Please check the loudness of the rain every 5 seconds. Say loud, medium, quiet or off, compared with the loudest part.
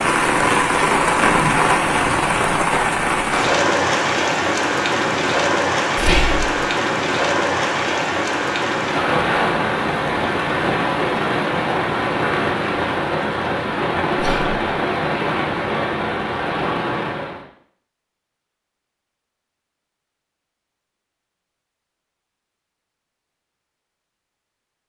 loud, loud, loud, medium, off.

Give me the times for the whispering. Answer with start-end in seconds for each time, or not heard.
6.0-6.5, 14.2-14.6.